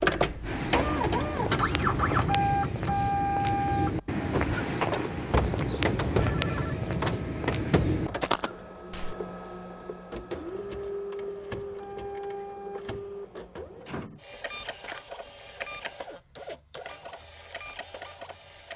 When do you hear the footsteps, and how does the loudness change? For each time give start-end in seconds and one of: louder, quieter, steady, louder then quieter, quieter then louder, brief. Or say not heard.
0.4-9.2 steady.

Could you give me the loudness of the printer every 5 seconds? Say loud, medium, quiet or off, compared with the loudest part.
loud, medium, medium, quiet.